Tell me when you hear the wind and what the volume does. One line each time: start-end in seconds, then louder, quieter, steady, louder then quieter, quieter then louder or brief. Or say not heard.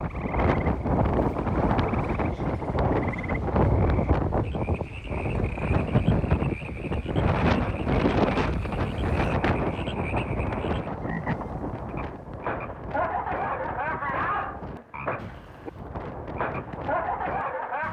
0.0-17.8 quieter.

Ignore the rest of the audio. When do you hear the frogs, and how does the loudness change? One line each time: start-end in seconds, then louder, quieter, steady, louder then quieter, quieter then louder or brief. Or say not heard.
0.0-17.8 louder.